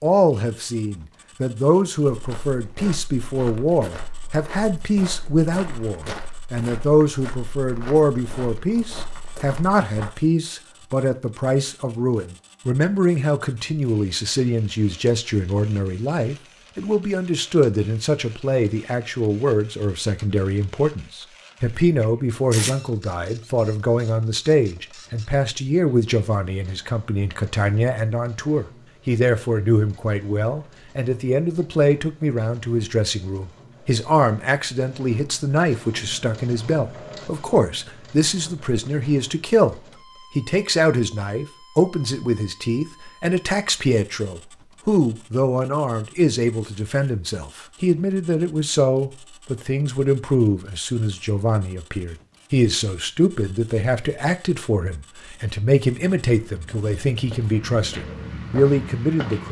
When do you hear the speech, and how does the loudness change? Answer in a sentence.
You can hear the speech from 0.0 to 59.4 s, at a steady volume.